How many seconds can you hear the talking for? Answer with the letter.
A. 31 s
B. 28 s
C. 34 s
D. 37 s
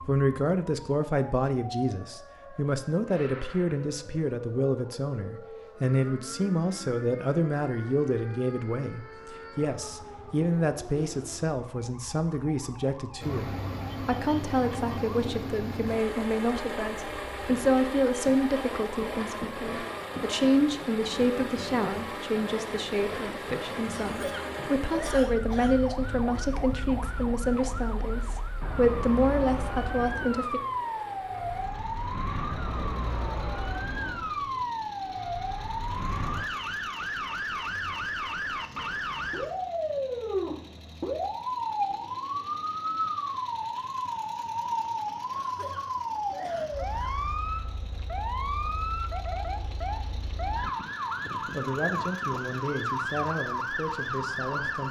C.